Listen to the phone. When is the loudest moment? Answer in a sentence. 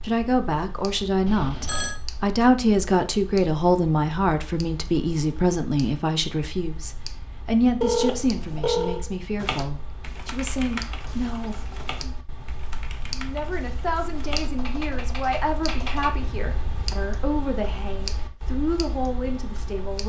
The volume of the phone peaks at 8 seconds.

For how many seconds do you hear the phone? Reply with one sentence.
You can hear the phone for 3 seconds altogether.